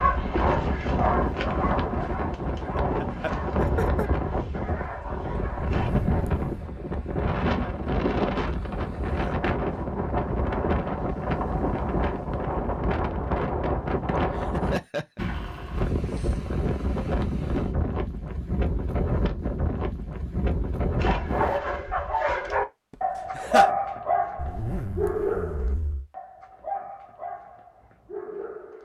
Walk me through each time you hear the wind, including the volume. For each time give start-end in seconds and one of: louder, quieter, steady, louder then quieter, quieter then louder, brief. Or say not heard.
0.0-21.6 steady.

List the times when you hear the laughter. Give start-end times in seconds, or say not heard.
2.8-4.1, 14.2-15.2, 22.9-23.7.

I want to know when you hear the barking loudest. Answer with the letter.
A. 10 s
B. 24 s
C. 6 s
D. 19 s
B.